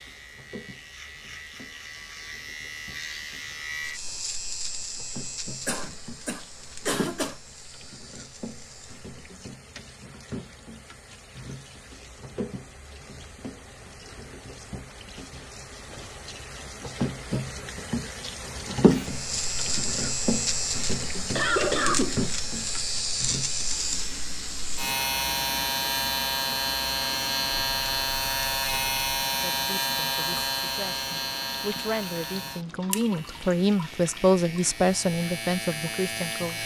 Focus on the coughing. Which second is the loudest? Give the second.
22 s.